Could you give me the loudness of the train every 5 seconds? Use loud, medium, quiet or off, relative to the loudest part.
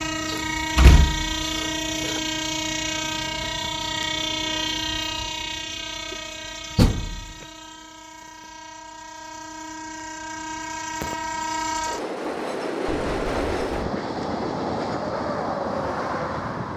loud, medium, loud, loud.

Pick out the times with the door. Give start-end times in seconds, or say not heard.
0.3-2.2, 6.8-7.2, 12.8-13.7.